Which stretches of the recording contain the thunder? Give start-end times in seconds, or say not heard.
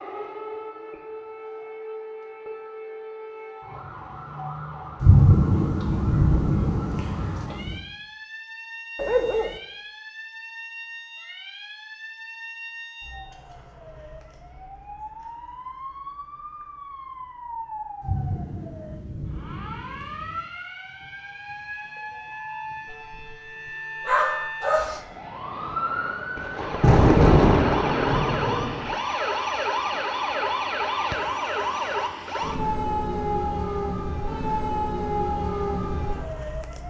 5.0-7.8, 18.0-20.4, 26.4-28.9.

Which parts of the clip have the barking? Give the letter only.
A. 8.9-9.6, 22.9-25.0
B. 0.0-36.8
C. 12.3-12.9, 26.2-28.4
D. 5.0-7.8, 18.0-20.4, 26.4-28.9
A.